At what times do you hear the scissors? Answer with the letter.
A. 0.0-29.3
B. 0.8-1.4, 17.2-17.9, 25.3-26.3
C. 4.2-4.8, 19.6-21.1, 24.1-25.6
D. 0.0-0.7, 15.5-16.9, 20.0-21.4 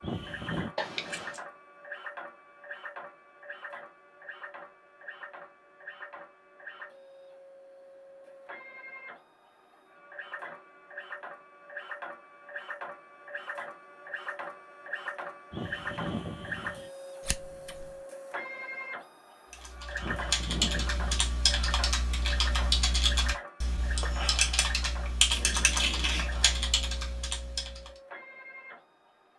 B.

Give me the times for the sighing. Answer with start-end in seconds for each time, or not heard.
0.0-0.7, 15.5-16.9, 20.0-21.4.